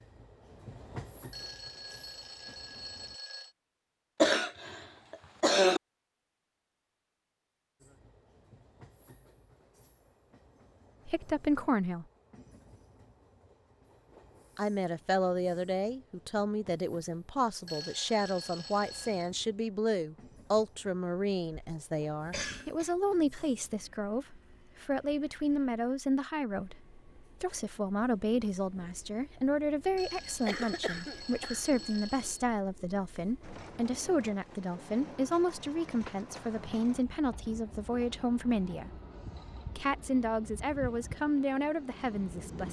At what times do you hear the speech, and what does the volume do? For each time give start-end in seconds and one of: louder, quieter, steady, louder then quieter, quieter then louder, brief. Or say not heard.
11.1-12.1 brief
14.6-26.8 steady
27.4-39.0 steady
39.8-42.6 brief.